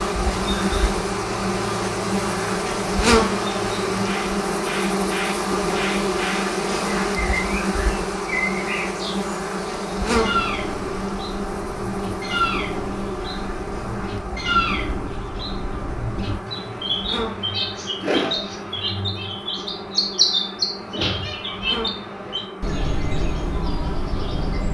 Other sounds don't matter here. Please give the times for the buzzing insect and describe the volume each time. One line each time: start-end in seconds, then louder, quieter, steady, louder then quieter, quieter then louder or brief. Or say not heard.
0.0-24.6 quieter.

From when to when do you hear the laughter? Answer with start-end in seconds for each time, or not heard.
not heard.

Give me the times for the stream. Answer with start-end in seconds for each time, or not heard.
not heard.